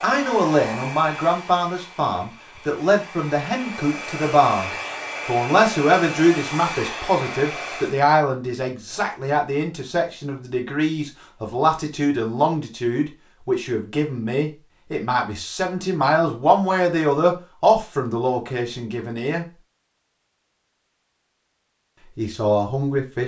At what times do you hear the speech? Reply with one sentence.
The speech can be heard from 0.0 to 19.4 s and from 22.1 to 23.2 s.